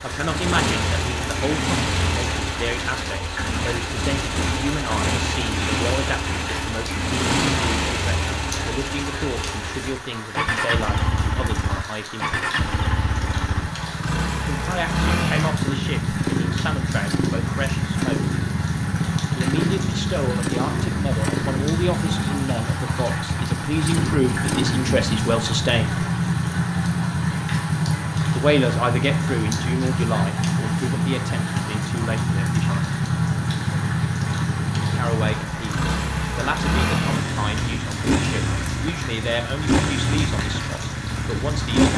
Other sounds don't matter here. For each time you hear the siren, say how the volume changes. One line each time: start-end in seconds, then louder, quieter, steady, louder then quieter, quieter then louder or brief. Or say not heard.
not heard.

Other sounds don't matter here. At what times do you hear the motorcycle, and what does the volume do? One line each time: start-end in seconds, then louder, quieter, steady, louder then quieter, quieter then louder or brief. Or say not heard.
0.0-41.9 steady.